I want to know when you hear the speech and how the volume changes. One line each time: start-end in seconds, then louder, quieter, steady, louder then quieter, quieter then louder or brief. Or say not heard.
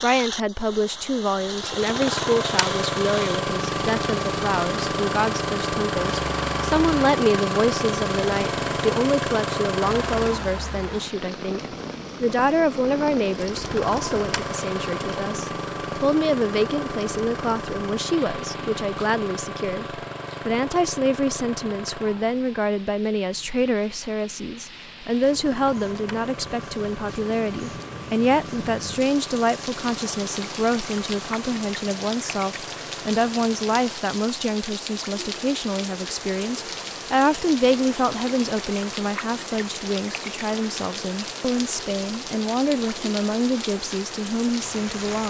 0.0-45.2 steady.